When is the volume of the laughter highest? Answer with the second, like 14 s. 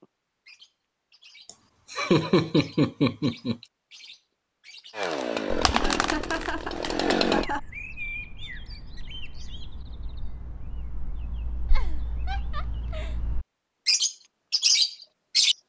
2 s.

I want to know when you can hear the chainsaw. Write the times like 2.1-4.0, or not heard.
5.0-7.5.